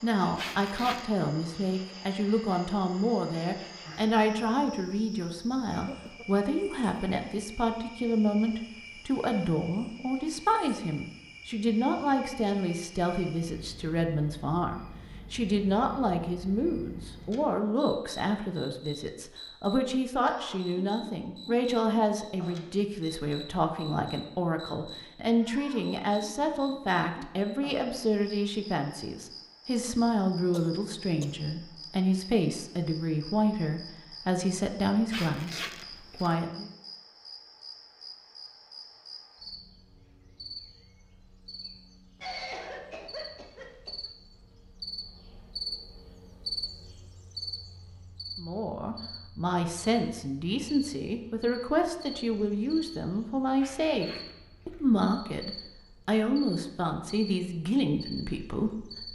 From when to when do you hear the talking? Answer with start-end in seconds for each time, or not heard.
0.0-36.7, 48.4-59.1.